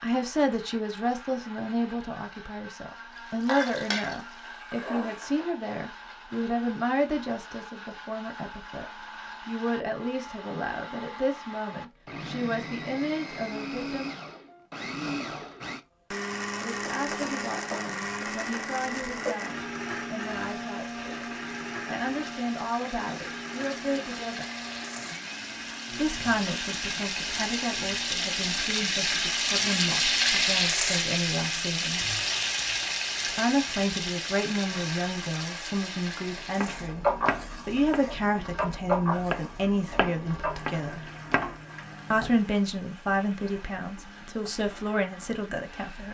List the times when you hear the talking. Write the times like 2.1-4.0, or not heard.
0.0-14.1, 16.6-24.4, 25.9-32.0, 33.4-37.0, 37.6-41.0, 42.1-46.0.